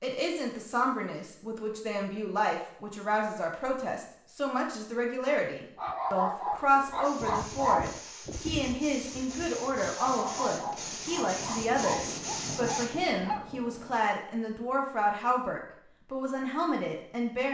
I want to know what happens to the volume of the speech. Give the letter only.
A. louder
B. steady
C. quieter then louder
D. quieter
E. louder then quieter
B.